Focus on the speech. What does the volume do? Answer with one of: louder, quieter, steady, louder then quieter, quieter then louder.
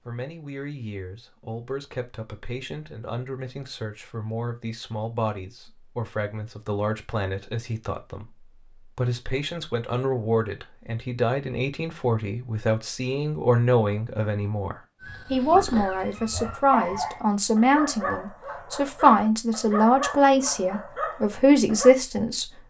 louder.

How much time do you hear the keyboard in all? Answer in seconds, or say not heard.
not heard.